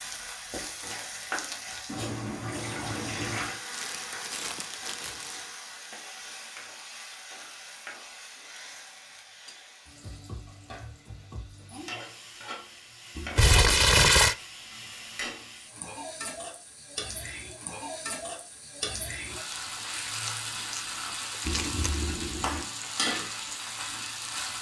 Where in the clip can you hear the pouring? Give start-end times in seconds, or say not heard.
1.9-3.6, 13.2-13.9, 21.4-22.6.